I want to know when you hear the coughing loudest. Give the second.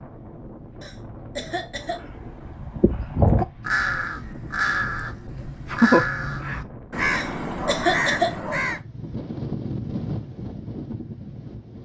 8 s.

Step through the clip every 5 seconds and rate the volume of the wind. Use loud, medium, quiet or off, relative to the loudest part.
medium, loud, loud.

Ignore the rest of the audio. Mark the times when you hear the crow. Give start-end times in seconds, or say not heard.
1.8-8.8.